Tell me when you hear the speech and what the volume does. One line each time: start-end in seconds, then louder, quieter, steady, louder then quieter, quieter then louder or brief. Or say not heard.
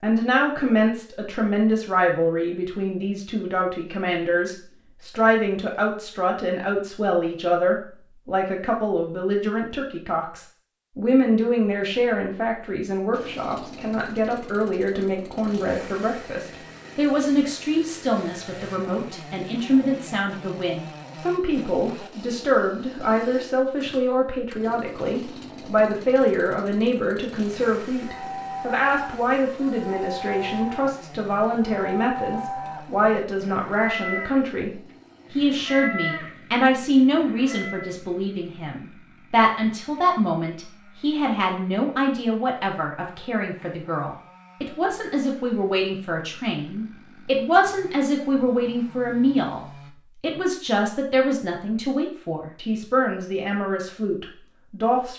0.0-55.1 steady.